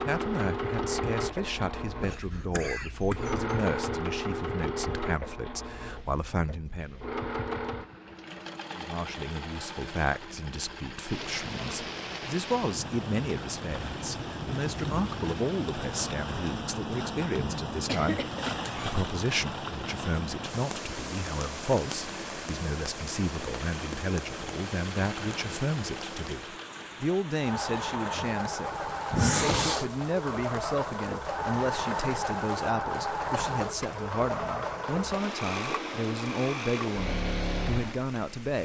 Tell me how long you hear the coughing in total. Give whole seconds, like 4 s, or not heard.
3 s.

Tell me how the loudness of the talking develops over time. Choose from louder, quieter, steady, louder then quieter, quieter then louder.
steady.